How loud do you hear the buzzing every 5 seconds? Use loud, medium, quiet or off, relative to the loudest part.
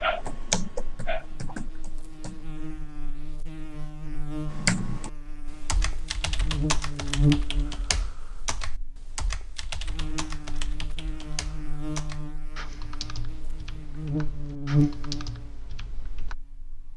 medium, loud, loud, quiet.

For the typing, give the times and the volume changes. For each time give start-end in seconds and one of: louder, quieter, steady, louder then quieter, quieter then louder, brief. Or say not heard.
0.0-2.5 brief
4.5-16.4 quieter.